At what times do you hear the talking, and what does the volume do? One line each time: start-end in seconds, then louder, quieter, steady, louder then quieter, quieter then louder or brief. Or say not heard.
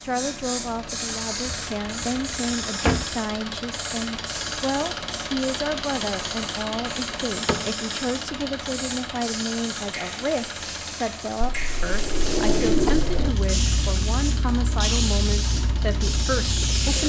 0.0-17.0 steady.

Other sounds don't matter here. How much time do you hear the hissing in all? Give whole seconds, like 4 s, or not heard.
17 s.